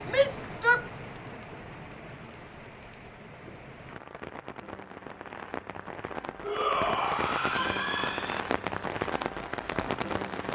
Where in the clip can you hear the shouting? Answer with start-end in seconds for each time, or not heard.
0.1-0.9, 6.4-8.4.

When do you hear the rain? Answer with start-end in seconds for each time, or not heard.
0.0-10.4.